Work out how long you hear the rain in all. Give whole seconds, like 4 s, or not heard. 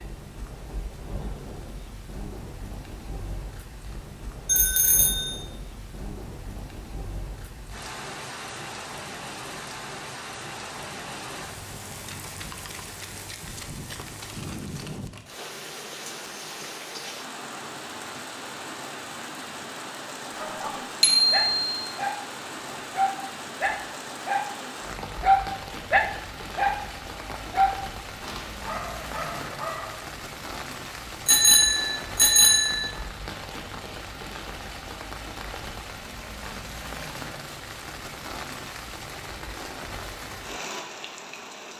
42 s.